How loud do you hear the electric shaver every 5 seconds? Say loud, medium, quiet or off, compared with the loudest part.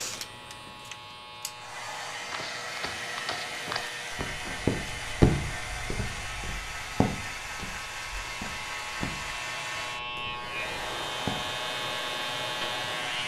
medium, medium, loud.